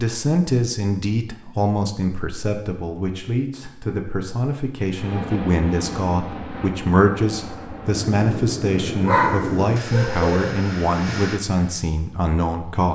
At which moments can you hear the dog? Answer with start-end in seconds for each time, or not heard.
9.1-10.6.